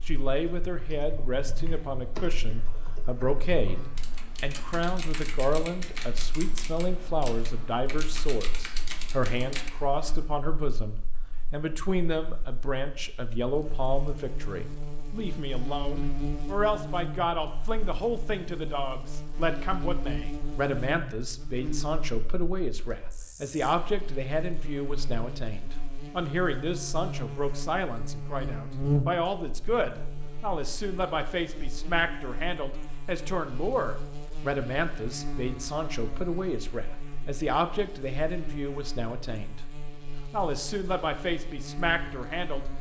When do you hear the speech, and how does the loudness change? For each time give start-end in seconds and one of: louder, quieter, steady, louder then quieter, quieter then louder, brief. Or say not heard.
0.1-39.6 steady
40.3-42.6 brief.